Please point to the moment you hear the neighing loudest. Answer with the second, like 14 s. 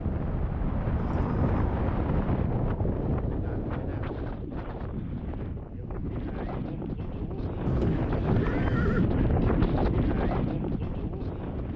8 s.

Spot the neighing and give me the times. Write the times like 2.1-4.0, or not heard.
0.9-1.8, 7.7-9.1.